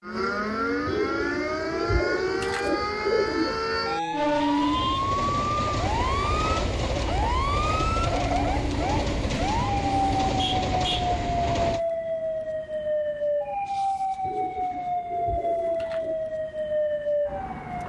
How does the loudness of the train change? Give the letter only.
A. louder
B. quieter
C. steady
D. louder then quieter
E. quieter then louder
C.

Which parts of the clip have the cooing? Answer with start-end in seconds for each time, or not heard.
0.8-3.6, 14.2-16.2.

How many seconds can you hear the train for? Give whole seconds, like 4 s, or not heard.
8 s.